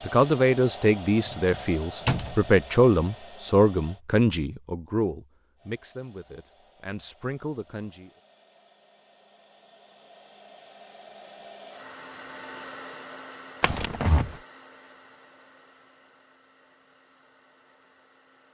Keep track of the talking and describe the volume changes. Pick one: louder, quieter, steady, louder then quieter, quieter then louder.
quieter.